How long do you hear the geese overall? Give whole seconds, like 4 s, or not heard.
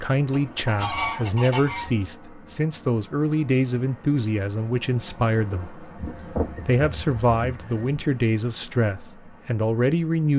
4 s.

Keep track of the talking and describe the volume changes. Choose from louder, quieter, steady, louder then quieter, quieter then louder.
steady.